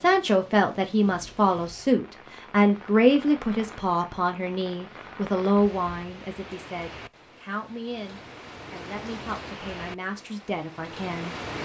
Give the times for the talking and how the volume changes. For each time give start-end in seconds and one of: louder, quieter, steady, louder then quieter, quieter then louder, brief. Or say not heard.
0.0-11.6 quieter.